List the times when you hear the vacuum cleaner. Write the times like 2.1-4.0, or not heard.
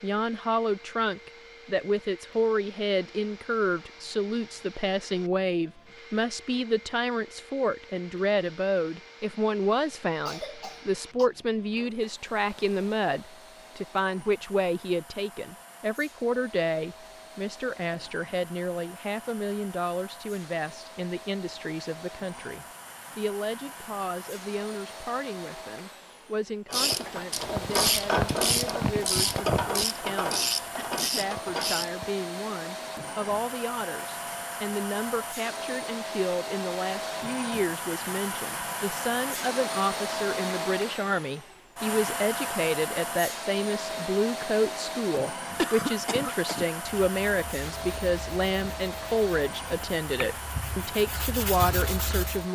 0.0-52.5.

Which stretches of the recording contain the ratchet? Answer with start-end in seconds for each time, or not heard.
26.6-32.1.